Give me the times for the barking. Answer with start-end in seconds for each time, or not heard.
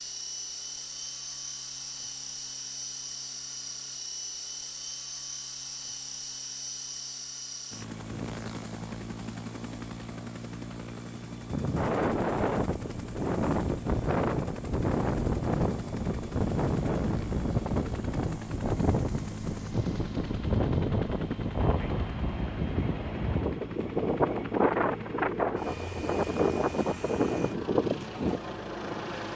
not heard.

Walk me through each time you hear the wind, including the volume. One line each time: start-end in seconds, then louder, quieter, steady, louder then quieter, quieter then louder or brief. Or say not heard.
11.5-29.3 steady.